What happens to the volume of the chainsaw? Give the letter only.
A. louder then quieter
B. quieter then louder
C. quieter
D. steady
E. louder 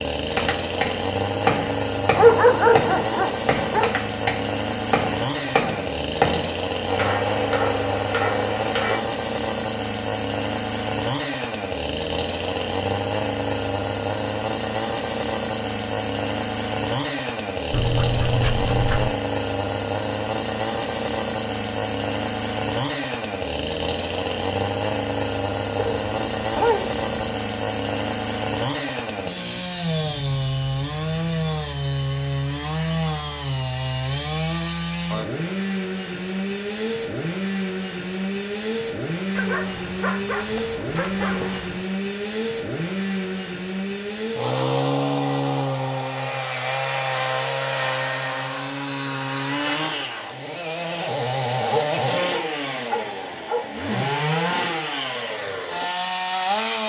D.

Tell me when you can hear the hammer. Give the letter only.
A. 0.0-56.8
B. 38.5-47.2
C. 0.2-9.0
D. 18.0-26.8
C.